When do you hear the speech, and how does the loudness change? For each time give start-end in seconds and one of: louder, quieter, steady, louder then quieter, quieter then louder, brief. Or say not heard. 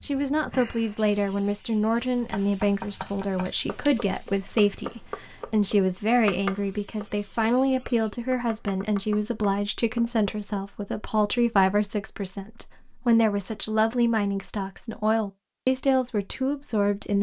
0.0-17.1 steady.